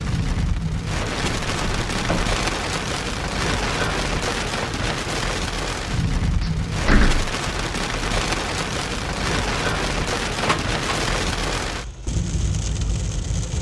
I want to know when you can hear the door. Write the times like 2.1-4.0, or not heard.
1.2-2.4, 6.4-7.3, 10.4-11.1.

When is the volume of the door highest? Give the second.
7 s.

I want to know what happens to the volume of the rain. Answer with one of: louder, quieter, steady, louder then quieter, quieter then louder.
steady.